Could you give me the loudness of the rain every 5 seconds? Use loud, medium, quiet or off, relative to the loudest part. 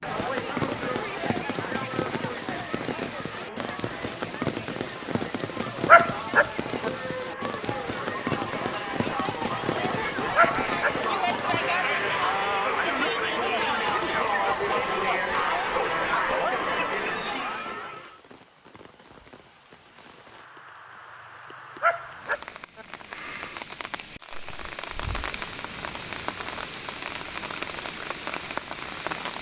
loud, loud, loud, quiet, medium, loud.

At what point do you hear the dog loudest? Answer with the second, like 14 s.
6 s.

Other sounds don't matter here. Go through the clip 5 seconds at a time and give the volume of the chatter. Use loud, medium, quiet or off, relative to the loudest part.
medium, medium, loud, loud, off, off.